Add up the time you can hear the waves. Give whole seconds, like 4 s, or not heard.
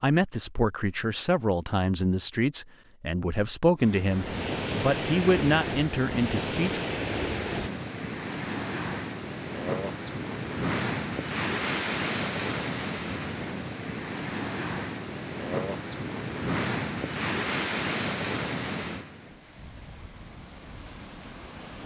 18 s.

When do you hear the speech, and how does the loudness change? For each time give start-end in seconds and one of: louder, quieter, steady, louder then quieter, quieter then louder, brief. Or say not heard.
0.0-6.8 steady.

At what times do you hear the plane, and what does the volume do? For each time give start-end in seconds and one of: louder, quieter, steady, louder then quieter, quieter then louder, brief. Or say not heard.
not heard.